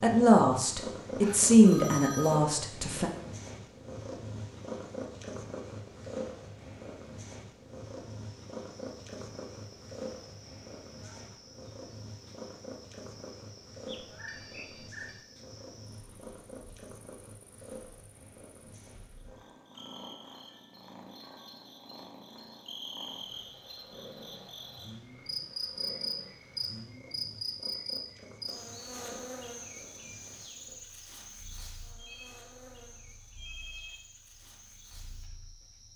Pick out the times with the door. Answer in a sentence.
The door can't be heard in this clip.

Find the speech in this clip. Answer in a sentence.
The speech can be heard from 0.0 to 3.1 s.